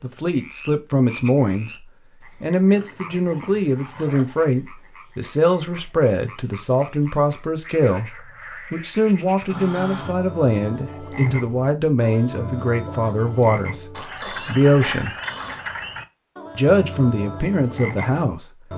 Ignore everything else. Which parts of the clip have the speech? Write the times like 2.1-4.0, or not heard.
0.0-1.7, 2.4-15.1, 16.6-18.4.